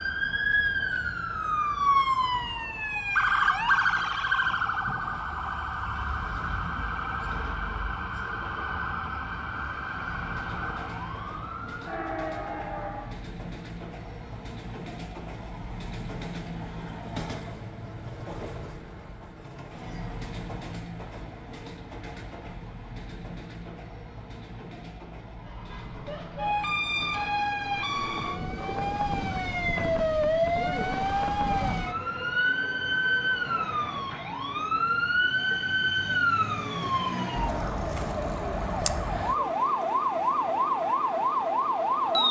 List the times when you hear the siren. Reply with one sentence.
The siren can be heard from 0.0 to 13.2 s and from 25.4 to 42.2 s.